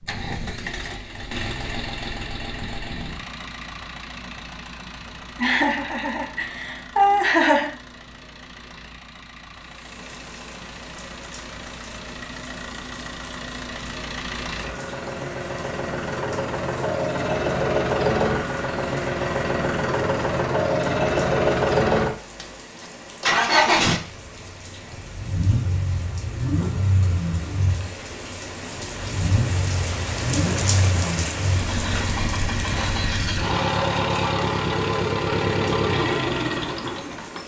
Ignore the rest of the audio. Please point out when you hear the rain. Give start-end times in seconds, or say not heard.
9.5-37.4.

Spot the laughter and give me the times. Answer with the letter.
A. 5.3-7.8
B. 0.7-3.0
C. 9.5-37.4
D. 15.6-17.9
A.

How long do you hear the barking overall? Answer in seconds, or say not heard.
not heard.